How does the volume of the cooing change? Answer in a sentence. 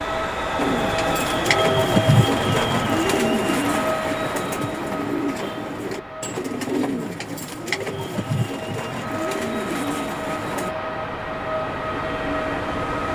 The volume of the cooing goes down.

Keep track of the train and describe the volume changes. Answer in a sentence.
The loudness of the train goes down, then up.